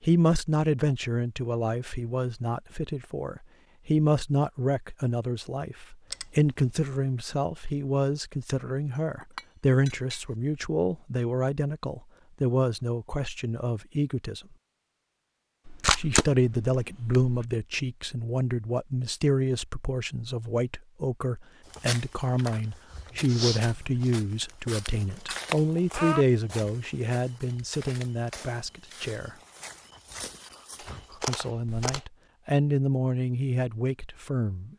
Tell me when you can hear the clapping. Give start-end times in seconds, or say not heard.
not heard.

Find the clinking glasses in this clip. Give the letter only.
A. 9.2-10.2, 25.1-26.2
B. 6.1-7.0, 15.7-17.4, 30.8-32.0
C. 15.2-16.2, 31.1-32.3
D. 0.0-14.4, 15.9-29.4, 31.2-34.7
A.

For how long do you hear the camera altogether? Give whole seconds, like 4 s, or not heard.
4 s.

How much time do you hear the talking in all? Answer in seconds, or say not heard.
31 s.